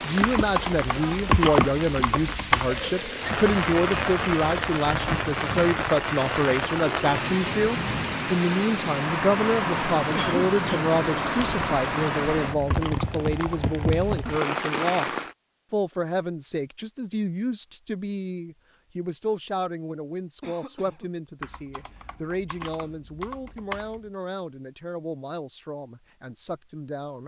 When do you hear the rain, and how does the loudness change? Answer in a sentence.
You can hear the rain from 0.0 to 15.3 s, at a steady volume.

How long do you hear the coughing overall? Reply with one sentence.
The coughing can be heard for 2 seconds in total.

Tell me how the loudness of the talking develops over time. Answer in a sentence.
The loudness of the talking goes down.